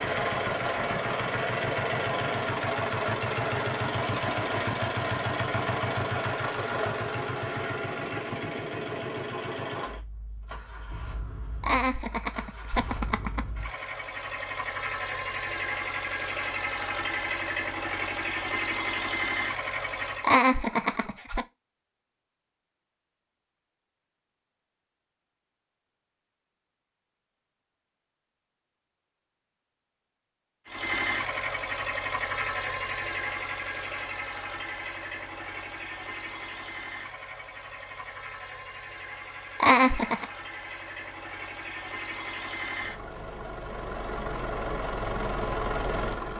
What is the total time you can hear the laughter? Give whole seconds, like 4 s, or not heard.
4 s.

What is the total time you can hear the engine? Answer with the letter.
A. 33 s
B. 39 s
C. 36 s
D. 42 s
C.